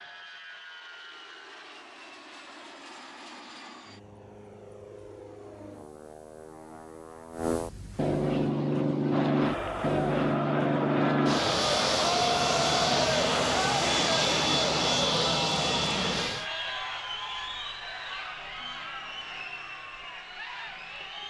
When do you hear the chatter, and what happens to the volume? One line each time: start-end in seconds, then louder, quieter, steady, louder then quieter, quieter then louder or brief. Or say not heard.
9.1-21.2 quieter.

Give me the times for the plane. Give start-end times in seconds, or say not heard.
0.0-16.5.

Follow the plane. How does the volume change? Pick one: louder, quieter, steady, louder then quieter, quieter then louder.
louder.